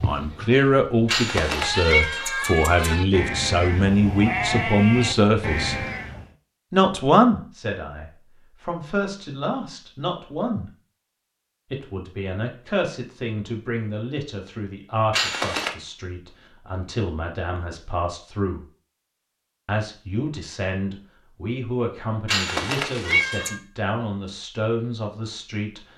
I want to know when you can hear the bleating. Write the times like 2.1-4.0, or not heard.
0.0-6.2.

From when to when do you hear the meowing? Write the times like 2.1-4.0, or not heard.
1.1-3.0, 15.1-15.8, 22.2-23.6.